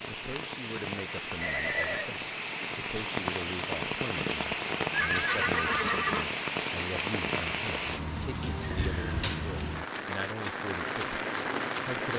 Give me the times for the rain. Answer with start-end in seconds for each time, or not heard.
0.0-12.1.